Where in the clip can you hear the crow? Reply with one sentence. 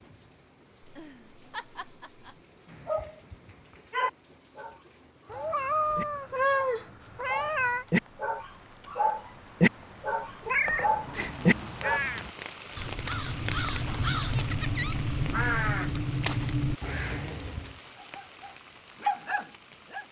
You can hear the crow from 10.7 to 17.8 s.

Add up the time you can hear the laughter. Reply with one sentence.
You can hear the laughter for 3 seconds altogether.